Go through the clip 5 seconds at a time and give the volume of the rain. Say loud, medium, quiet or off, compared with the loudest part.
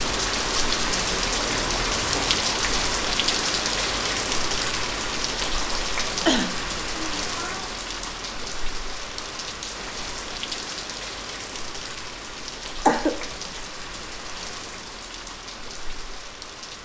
loud, medium, medium, quiet.